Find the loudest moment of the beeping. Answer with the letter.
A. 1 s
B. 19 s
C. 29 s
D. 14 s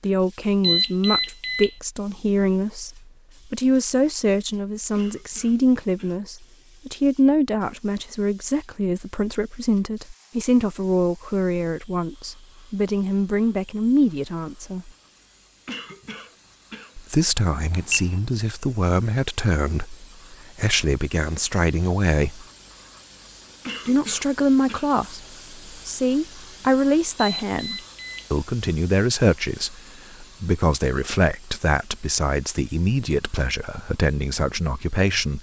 A.